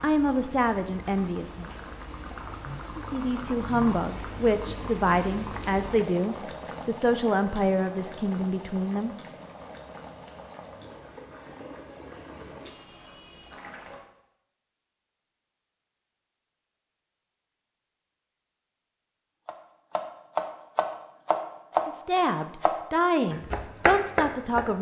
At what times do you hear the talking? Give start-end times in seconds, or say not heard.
0.0-1.7, 3.0-9.2, 21.9-24.7.